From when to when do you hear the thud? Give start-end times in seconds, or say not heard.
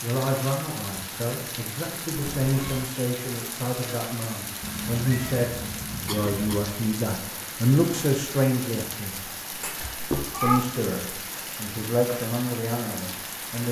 9.5-10.5.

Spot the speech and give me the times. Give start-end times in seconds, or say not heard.
0.0-9.3, 10.4-13.6.